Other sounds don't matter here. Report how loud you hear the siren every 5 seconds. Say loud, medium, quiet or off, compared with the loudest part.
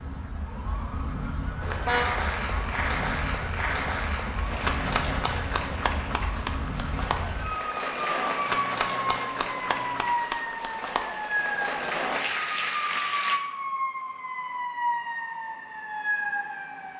medium, loud, loud, loud.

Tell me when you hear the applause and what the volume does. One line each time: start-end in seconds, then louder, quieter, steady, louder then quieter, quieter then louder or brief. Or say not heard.
1.6-13.4 steady.